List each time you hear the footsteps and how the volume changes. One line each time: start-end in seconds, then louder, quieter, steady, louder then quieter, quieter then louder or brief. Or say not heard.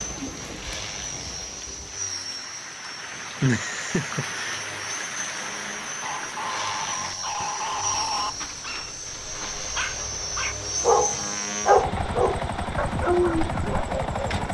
not heard.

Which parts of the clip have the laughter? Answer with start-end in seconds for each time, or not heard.
3.4-4.6.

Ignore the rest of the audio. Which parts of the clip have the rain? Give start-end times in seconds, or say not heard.
0.0-11.0.